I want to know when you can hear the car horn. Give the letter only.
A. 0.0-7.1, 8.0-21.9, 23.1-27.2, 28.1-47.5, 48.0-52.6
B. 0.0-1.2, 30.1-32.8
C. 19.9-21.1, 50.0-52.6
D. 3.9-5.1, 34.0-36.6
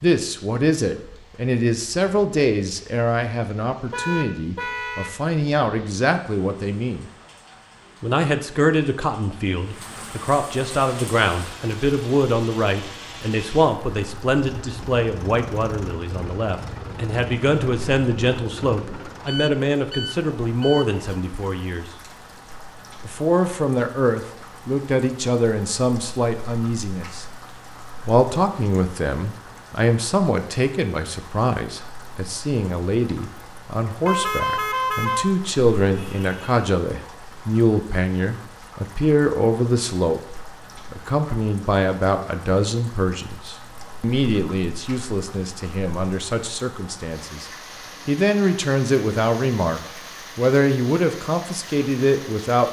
D.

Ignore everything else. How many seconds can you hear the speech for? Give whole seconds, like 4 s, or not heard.
49 s.